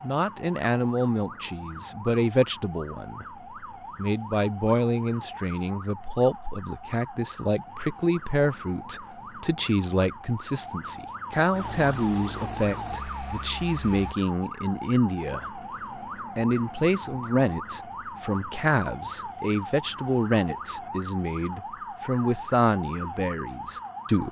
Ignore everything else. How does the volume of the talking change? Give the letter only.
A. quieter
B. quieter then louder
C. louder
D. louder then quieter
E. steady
E.